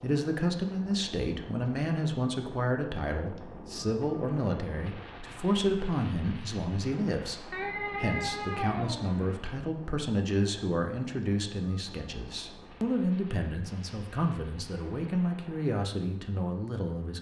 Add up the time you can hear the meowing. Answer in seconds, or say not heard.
2 s.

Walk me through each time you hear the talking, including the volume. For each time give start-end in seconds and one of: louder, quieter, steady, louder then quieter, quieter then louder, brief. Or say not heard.
0.0-17.1 steady.